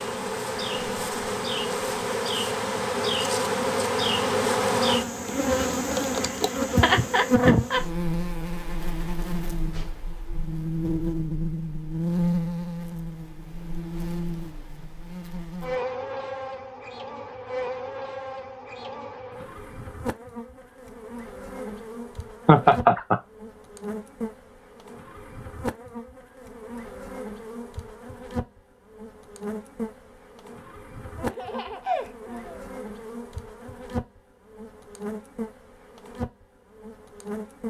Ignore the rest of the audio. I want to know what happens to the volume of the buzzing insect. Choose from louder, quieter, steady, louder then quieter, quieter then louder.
quieter.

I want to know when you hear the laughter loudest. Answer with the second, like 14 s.
23 s.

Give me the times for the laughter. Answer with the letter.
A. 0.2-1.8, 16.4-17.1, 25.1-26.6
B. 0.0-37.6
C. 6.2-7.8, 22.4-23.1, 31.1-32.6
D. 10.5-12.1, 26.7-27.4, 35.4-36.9
C.